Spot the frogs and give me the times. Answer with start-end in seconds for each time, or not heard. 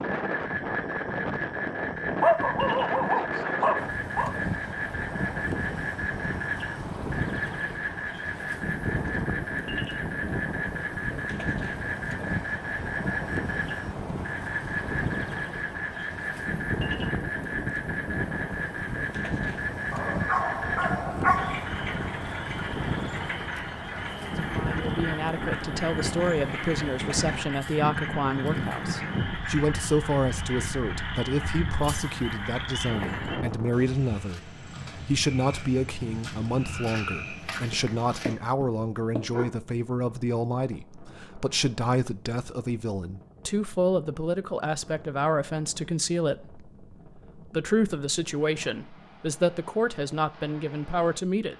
0.0-38.4.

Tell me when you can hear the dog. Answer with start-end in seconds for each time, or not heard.
2.2-4.3, 19.9-21.6, 37.7-39.5.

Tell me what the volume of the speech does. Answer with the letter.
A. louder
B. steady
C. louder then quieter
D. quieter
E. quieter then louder
B.